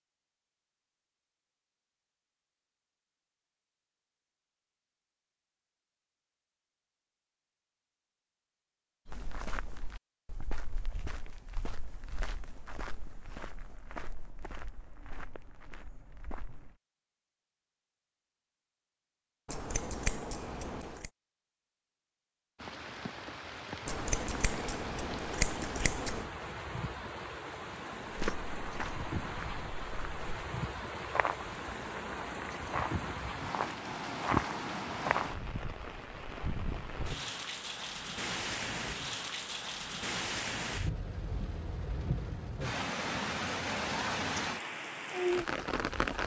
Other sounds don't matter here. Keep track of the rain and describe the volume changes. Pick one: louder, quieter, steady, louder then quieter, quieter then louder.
louder.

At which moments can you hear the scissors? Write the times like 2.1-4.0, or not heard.
19.4-21.1, 23.9-26.3.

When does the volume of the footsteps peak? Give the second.
34 s.